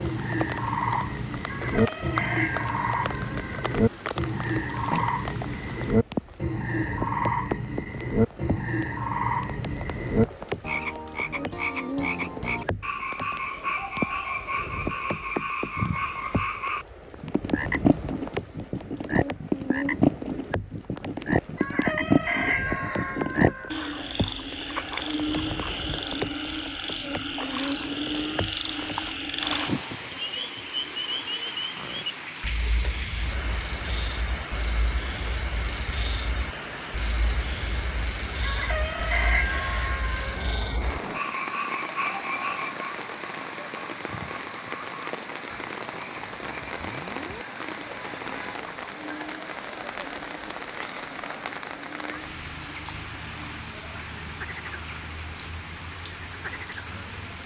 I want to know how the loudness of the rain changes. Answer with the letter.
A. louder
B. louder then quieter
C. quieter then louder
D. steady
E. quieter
D.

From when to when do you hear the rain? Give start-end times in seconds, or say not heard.
0.0-57.4.